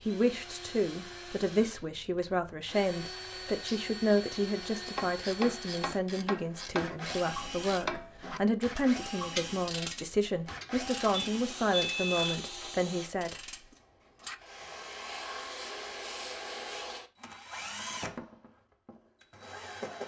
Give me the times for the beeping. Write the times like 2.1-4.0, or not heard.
11.1-12.8.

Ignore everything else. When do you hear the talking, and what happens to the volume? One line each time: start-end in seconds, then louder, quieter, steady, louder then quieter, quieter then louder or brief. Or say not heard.
0.1-13.3 steady.